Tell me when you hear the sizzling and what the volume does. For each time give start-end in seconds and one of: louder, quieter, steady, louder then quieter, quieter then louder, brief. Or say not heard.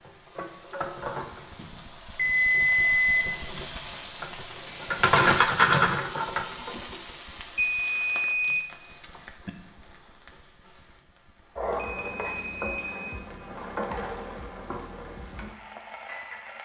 0.0-16.5 louder then quieter.